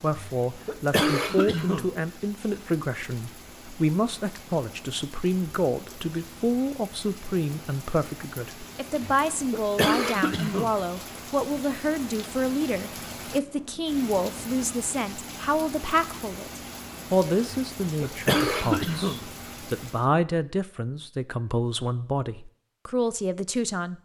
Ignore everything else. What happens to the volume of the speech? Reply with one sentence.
The loudness of the speech stays about the same.